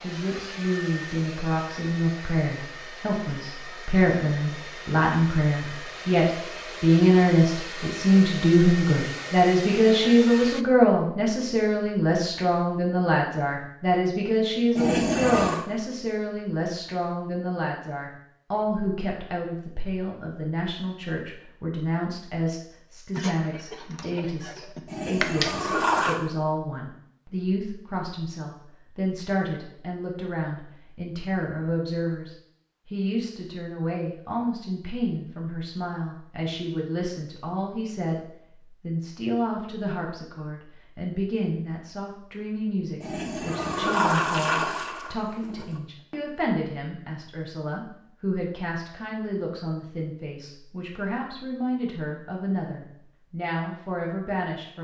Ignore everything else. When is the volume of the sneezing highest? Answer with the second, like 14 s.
25 s.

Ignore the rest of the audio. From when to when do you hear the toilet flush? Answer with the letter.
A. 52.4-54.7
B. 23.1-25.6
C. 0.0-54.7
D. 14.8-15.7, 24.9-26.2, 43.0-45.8
D.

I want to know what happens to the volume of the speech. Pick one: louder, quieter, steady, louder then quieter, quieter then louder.
quieter.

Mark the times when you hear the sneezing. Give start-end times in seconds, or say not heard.
23.1-25.6.